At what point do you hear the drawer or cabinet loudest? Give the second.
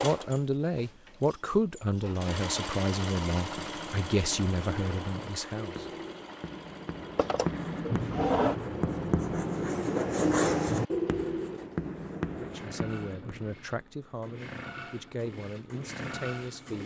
8 s.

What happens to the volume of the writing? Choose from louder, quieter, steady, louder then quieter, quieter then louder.
louder then quieter.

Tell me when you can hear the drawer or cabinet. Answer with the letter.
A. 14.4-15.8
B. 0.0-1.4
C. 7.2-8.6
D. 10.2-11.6
C.